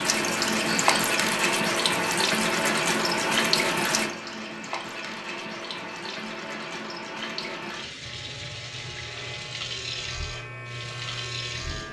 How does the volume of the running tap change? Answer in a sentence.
The loudness of the running tap goes down.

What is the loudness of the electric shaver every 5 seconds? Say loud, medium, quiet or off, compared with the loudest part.
off, medium, loud.